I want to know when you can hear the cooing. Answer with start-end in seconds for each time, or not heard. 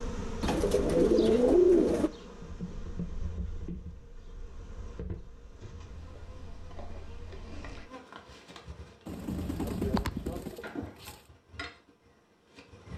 0.4-2.1, 9.1-11.1.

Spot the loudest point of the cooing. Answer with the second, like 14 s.
2 s.